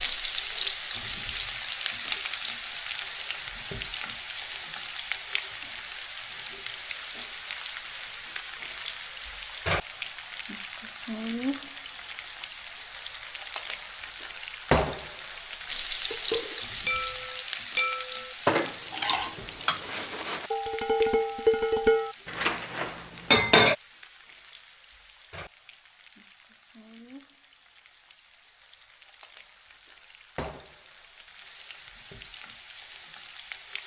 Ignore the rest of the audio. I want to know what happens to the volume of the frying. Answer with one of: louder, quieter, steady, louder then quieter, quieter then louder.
quieter.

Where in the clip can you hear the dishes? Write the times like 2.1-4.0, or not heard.
16.1-23.8.